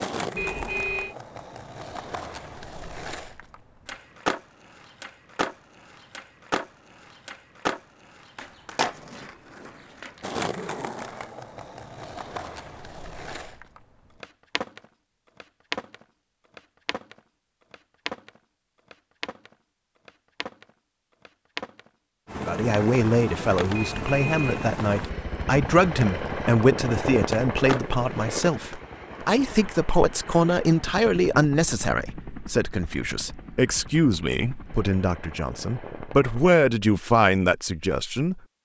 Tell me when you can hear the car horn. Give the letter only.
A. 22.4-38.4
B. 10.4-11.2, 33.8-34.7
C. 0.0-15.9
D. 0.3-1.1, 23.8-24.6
D.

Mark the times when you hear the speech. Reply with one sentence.
The speech can be heard from 22.4 to 38.4 s.